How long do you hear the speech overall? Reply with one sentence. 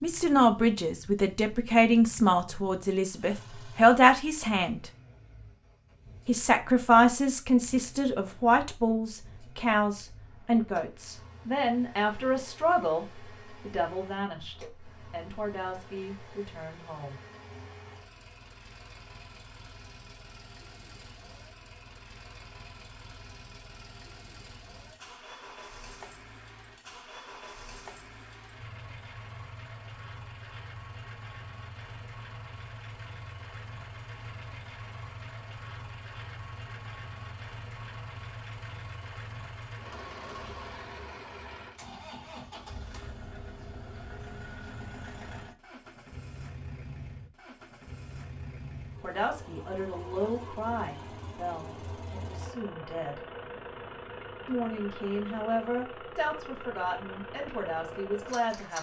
You can hear the speech for 24 seconds altogether.